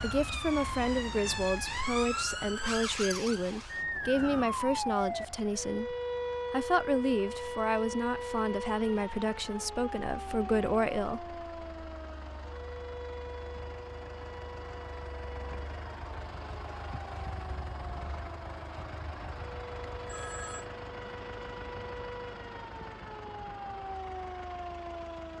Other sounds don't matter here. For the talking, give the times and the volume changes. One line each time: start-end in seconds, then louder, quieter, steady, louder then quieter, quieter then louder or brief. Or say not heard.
0.0-11.3 steady.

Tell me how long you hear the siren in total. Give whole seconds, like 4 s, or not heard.
25 s.